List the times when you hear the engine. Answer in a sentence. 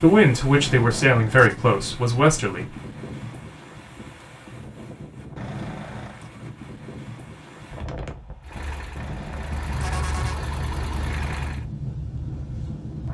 You can hear the engine from 8.4 to 11.7 s.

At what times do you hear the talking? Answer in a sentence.
You can hear the talking from 0.0 to 2.7 s.